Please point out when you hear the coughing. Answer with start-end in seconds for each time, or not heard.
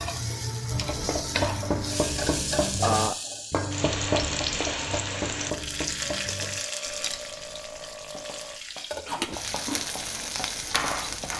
not heard.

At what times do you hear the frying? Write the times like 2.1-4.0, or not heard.
0.0-11.3.